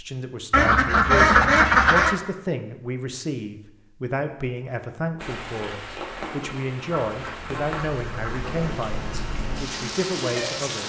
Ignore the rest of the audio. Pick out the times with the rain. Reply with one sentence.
You can hear the rain from 5.2 to 10.8 s.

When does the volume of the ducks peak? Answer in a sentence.
The loudest moment of the ducks is at 1 second.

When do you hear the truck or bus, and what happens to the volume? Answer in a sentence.
The truck or bus can't be heard in this clip.